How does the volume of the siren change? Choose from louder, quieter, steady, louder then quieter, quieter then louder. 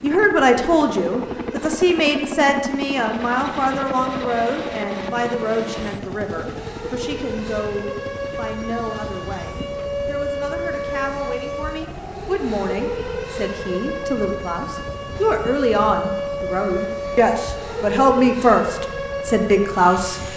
louder.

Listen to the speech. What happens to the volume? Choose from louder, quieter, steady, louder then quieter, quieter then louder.
quieter then louder.